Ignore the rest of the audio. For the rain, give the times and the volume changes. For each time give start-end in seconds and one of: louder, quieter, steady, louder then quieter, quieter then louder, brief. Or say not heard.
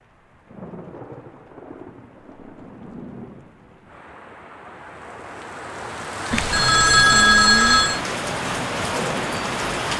0.0-9.9 louder.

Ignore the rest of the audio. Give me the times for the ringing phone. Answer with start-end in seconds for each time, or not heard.
6.3-8.0.